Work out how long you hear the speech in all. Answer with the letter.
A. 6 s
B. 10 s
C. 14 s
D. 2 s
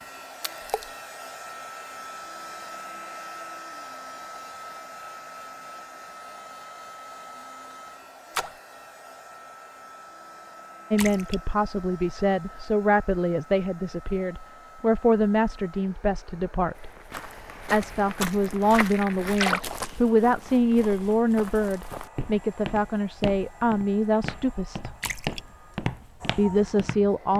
C.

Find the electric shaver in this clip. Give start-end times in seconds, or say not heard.
not heard.